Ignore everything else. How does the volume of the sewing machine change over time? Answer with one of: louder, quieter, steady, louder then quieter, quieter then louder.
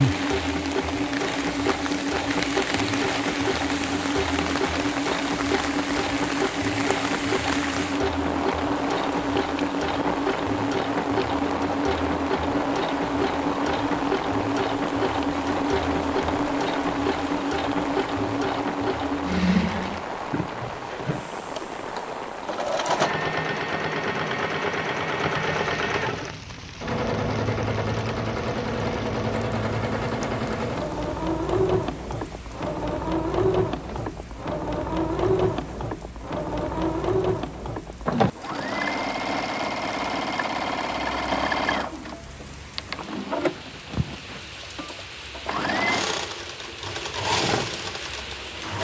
steady.